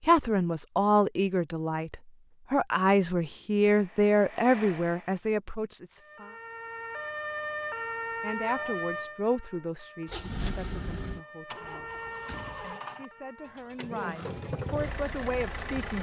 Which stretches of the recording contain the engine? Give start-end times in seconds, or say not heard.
3.6-5.2, 10.1-15.9.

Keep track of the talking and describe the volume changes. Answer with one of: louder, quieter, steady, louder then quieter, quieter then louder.
quieter then louder.